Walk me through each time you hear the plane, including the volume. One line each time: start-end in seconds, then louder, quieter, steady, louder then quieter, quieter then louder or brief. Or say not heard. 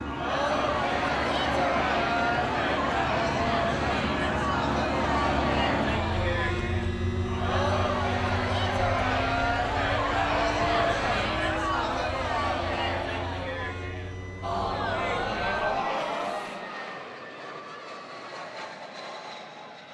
0.0-19.8 quieter.